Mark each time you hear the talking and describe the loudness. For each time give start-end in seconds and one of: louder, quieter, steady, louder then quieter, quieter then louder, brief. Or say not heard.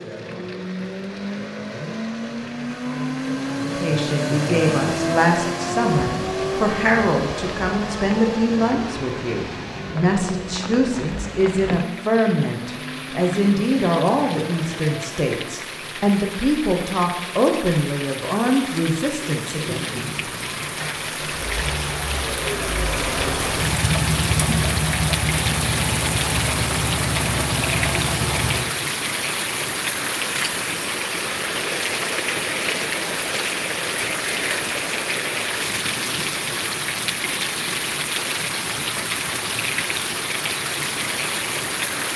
3.6-19.8 steady.